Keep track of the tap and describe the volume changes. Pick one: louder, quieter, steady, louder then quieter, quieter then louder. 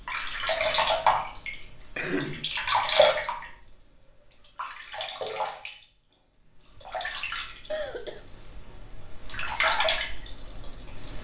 quieter then louder.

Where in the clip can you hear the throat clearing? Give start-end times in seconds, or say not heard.
1.9-2.5, 7.7-8.2.